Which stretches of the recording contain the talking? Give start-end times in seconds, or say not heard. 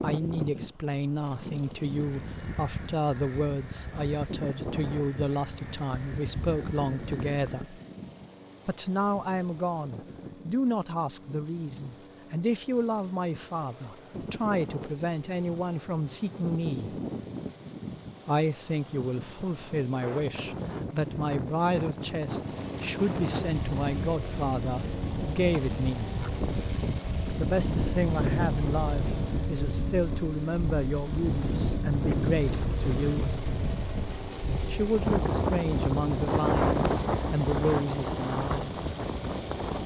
0.0-7.8, 8.7-16.9, 18.2-26.1, 27.4-33.4, 34.7-38.8.